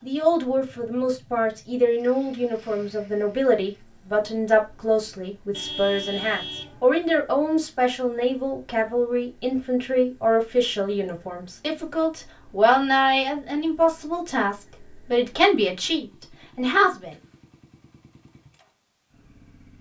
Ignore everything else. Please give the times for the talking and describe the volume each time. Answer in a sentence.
The talking can be heard from 0.0 to 17.1 s, at a steady volume.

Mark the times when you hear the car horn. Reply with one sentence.
You can hear the car horn from 5.5 to 6.9 s.